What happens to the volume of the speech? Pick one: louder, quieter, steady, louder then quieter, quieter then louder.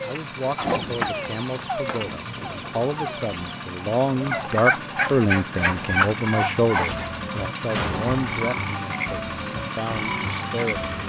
louder then quieter.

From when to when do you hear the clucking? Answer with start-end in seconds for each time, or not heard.
0.6-7.1.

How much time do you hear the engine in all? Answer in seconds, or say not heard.
11 s.